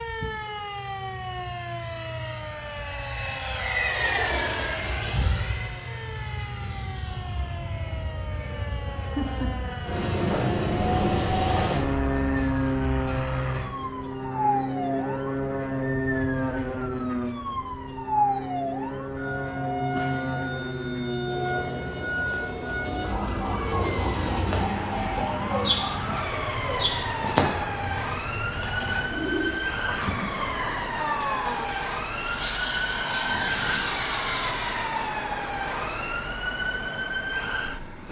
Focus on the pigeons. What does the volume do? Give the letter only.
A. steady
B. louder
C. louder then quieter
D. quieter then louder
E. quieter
C.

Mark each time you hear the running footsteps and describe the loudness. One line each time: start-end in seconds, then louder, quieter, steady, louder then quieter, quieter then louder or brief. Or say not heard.
not heard.